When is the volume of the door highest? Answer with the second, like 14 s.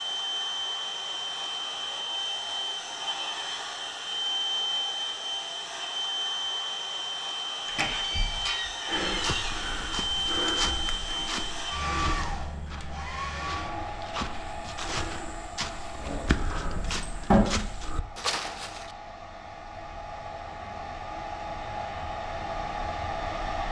17 s.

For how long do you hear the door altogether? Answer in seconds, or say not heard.
3 s.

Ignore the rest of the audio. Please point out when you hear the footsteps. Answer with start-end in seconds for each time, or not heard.
8.8-18.9.